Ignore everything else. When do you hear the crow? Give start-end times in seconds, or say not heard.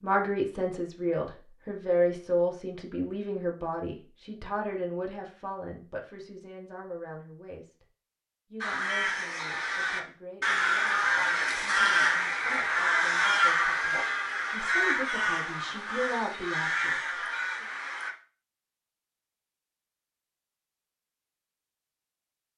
8.6-18.1.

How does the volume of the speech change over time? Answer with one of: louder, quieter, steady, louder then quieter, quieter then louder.
quieter then louder.